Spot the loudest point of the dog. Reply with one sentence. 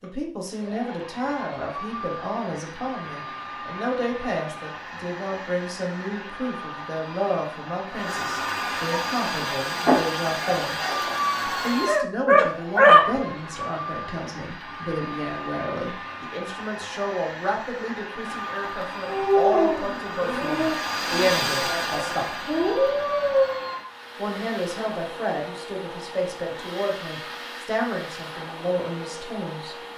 The volume of the dog peaks at 13 seconds.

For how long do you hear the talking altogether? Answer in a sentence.
You can hear the talking for 27 seconds altogether.